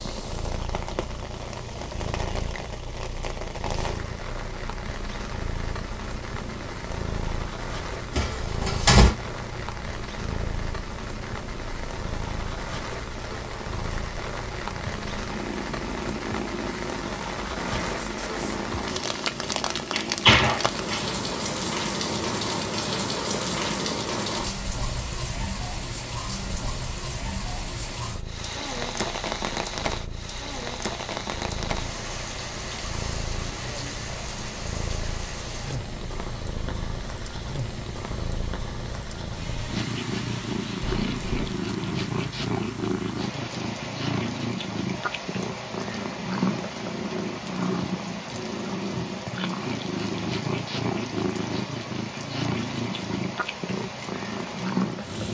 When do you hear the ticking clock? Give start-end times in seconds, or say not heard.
not heard.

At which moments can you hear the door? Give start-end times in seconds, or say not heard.
8.2-9.2, 19.9-21.0, 40.8-41.5.